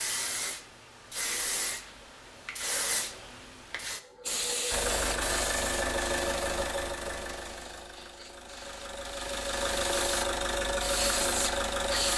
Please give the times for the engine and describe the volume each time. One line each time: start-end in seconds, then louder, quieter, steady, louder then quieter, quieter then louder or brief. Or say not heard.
4.7-12.1 quieter then louder.